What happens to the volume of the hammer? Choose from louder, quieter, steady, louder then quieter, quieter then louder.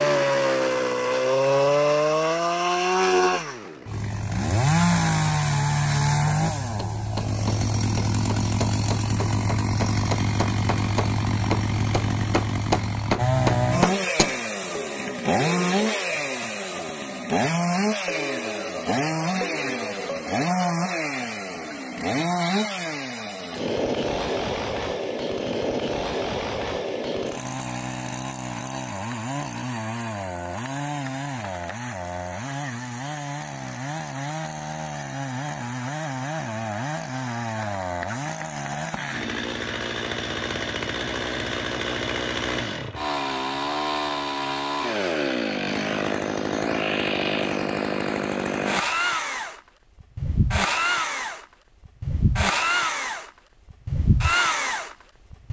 louder.